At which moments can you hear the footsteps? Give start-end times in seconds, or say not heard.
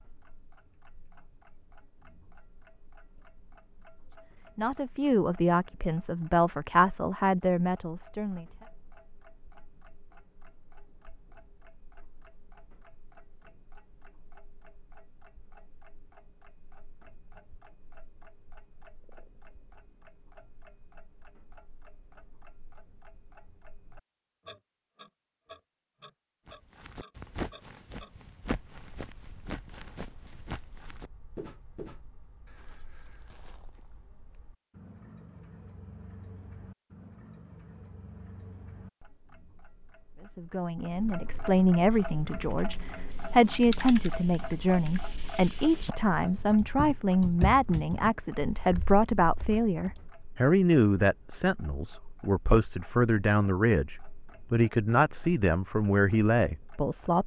26.4-34.0.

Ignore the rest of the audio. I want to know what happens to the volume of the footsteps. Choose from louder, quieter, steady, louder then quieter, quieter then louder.
quieter.